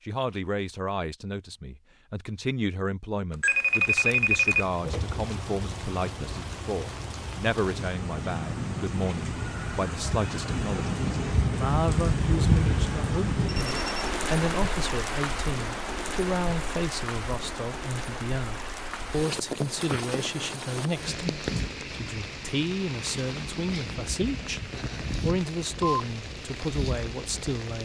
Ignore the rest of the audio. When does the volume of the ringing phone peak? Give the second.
4 s.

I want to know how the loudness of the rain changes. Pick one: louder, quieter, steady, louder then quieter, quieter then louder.
louder then quieter.